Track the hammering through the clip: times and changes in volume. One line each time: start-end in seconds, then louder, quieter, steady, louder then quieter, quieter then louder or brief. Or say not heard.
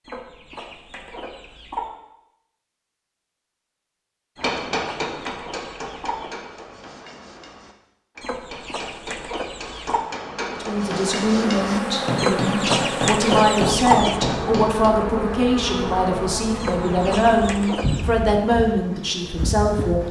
4.3-14.9 quieter then louder.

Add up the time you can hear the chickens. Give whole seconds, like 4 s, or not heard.
9 s.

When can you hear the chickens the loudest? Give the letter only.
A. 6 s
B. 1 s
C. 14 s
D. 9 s
C.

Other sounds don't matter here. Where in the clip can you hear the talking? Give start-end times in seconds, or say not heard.
10.5-20.0.